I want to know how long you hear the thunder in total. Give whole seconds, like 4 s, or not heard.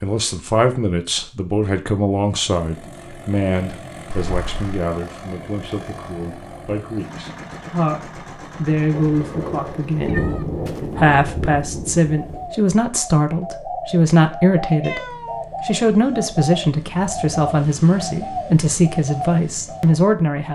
4 s.